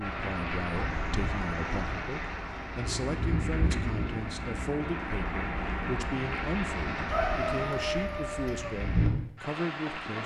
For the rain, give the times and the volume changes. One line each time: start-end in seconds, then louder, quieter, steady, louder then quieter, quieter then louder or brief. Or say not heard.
0.0-10.2 steady.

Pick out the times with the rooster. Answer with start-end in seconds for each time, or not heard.
7.1-8.8.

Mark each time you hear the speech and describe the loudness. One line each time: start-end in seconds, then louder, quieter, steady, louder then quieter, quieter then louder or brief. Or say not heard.
0.0-10.2 steady.